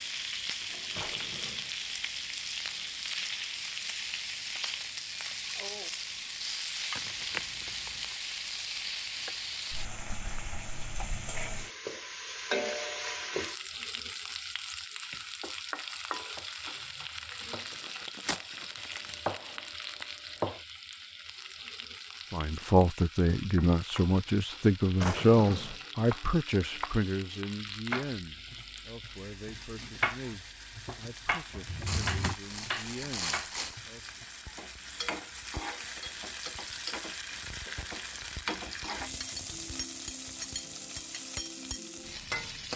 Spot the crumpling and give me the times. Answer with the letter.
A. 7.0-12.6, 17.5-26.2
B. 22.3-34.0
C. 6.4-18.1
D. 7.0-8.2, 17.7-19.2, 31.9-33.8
D.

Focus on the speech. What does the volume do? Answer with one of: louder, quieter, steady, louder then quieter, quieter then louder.
quieter.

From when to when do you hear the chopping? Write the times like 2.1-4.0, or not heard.
15.1-20.6, 25.6-34.3.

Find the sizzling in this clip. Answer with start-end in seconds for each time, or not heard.
0.0-42.7.